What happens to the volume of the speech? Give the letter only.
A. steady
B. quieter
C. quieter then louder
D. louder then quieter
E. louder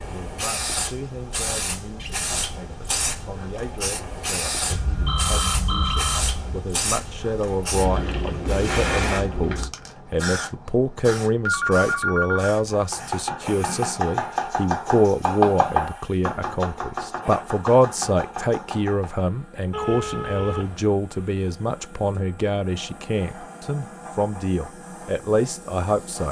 E.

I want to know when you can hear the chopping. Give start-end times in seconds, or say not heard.
12.7-19.2.